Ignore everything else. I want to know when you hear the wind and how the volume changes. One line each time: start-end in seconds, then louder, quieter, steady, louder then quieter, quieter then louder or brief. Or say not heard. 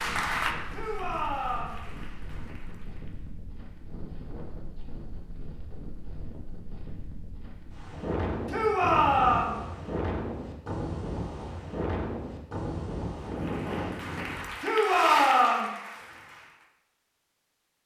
0.0-14.5 louder.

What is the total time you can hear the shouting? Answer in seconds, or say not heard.
3 s.